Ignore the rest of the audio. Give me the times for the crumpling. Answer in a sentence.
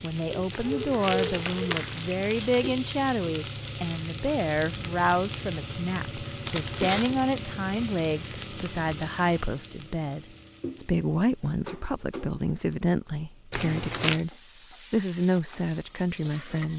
You can hear the crumpling from 0.5 to 2.7 s, from 6.5 to 7.1 s and from 13.5 to 14.2 s.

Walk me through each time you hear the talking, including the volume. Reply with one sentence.
You can hear the talking from 0.0 to 14.3 s, at a steady volume; and briefly from 14.9 to 16.7 s.